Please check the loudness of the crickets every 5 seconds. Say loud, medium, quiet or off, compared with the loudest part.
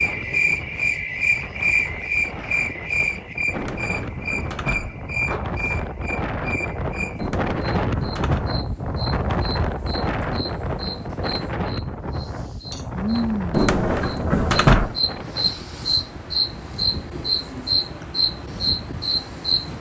loud, medium, medium, loud.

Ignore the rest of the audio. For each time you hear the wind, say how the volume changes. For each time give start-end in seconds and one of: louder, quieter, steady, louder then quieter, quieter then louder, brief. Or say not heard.
0.0-19.7 louder then quieter.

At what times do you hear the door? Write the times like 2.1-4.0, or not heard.
3.5-5.0, 7.2-8.5, 13.5-14.9.